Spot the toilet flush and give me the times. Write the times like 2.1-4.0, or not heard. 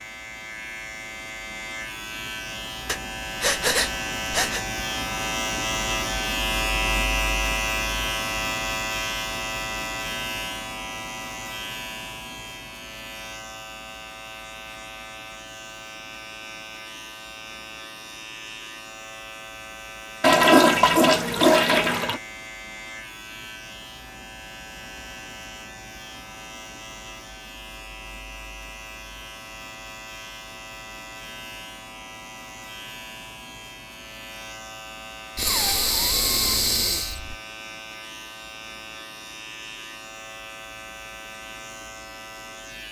20.2-22.2.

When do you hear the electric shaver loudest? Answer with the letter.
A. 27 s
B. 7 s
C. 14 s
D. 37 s
B.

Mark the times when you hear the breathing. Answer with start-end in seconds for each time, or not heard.
2.9-4.7, 35.4-37.4.